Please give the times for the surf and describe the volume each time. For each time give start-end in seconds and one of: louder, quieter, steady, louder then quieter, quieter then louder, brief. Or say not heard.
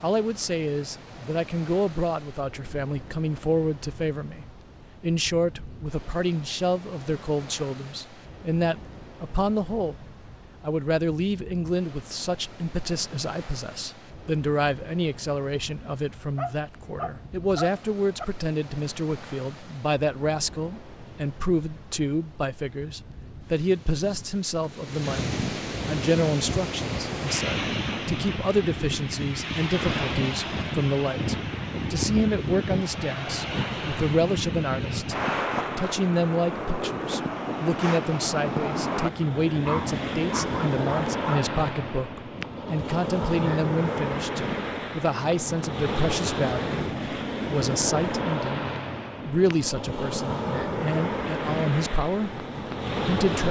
0.0-53.4 louder.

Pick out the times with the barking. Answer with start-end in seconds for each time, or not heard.
16.4-18.2, 39.6-41.4.